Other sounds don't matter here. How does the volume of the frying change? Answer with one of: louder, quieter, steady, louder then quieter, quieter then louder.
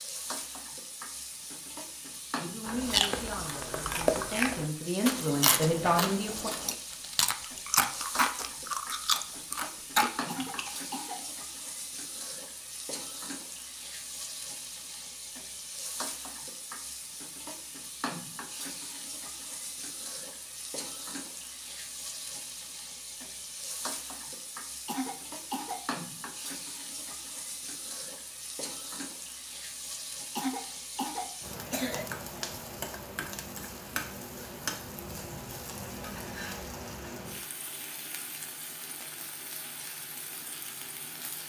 steady.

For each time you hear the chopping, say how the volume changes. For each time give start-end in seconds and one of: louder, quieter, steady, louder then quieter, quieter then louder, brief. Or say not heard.
not heard.